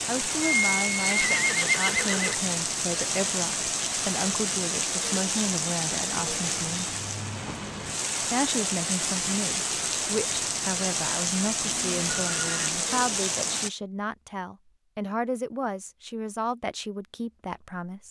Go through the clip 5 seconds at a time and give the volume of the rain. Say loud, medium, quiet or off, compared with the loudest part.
loud, loud, loud, off.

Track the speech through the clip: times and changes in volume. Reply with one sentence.
The speech can be heard from 0.1 to 7.0 s, at a steady volume; and from 8.2 to 18.0 s, at a steady volume.